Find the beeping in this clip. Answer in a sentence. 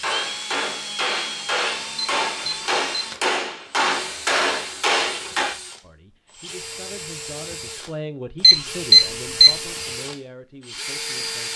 You can hear the beeping from 1.9 to 3.0 s and from 8.4 to 9.5 s.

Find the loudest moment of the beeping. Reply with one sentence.
The volume of the beeping peaks at 9 seconds.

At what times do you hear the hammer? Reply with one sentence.
You can hear the hammer from 0.0 to 5.5 s.